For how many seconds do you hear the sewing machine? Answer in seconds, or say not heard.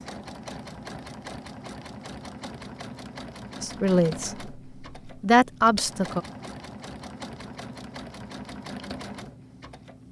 10 s.